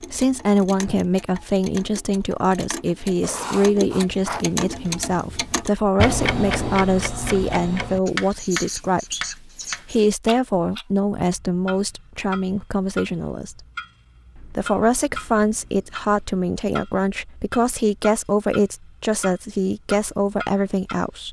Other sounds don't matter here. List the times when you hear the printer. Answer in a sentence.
The printer can't be heard in this clip.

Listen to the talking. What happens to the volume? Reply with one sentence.
The volume of the talking stays about the same.